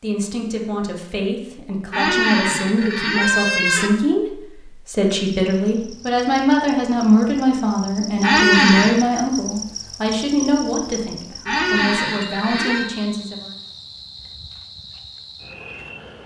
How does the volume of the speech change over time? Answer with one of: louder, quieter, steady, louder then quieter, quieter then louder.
louder then quieter.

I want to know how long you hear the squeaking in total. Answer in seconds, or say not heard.
4 s.